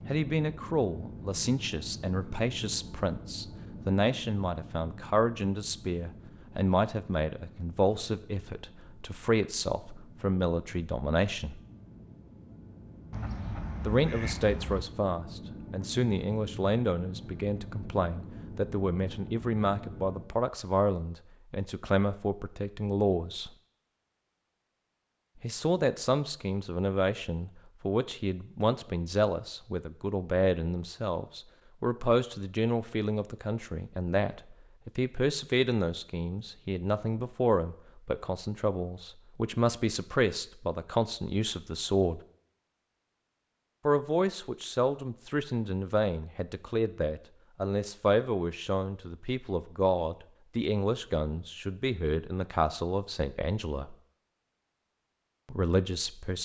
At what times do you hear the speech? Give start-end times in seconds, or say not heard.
0.1-11.6, 13.8-23.5, 25.4-42.2, 43.9-54.0, 55.5-56.4.